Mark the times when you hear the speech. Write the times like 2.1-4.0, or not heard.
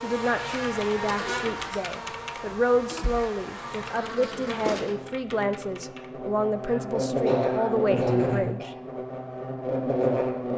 0.0-8.7.